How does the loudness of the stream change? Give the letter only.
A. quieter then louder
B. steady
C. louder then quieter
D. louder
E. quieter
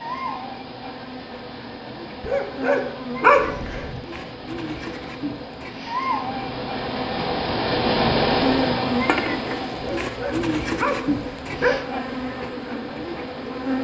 C.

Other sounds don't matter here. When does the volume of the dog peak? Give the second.
3 s.